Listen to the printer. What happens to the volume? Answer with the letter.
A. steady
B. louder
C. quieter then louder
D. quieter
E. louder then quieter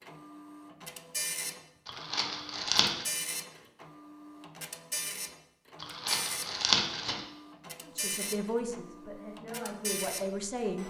A.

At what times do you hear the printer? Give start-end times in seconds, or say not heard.
0.0-10.8.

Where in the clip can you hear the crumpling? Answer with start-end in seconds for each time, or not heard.
1.9-3.0, 5.8-7.2.